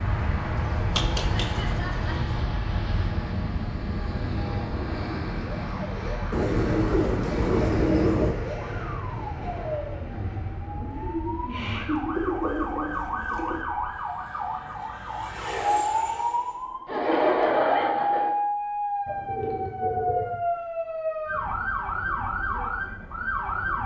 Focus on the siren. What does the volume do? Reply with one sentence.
The volume of the siren goes up.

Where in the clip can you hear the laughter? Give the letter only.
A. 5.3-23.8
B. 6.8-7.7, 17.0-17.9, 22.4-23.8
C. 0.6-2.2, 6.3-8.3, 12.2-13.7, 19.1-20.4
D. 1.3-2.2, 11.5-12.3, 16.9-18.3
D.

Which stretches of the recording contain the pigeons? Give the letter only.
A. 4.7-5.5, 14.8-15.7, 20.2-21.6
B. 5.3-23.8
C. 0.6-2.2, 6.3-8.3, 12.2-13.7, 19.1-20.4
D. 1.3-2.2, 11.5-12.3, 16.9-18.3
C.